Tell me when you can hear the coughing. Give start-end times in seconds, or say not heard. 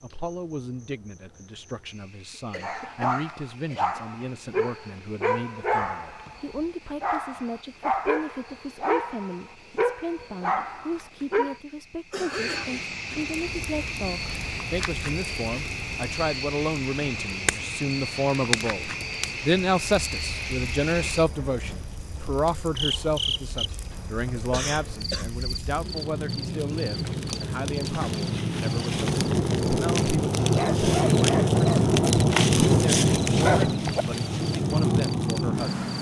2.3-4.0, 12.1-13.2, 24.3-25.3.